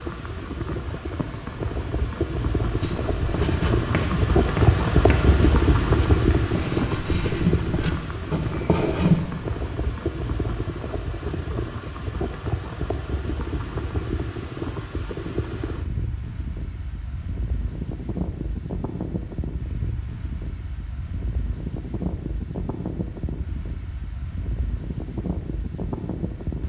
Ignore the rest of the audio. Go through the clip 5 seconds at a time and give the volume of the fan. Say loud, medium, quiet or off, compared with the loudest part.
loud, loud, medium, medium, medium, medium.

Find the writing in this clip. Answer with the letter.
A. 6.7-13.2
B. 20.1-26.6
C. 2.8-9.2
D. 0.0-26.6
C.